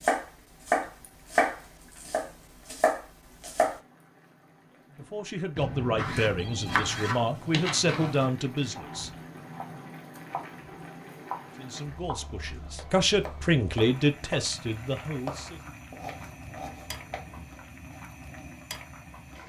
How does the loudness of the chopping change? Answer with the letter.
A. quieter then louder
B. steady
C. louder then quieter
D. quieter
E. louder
D.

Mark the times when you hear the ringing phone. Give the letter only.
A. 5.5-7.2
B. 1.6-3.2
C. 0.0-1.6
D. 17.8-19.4
A.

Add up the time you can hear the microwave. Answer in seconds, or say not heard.
not heard.